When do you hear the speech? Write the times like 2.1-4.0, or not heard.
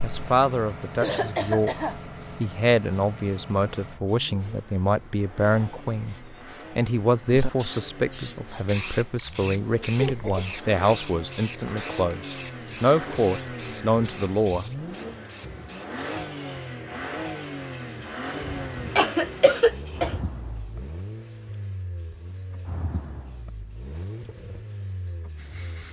0.0-14.7.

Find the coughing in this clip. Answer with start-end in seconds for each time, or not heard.
1.0-2.0, 9.9-10.5, 18.4-20.1.